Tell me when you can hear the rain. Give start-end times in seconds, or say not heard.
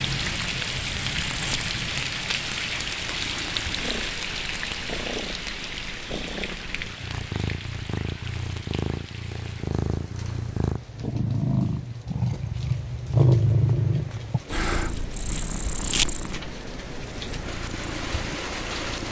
0.0-19.0.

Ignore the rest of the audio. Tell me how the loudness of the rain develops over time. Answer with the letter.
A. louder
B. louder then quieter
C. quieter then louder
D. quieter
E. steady
C.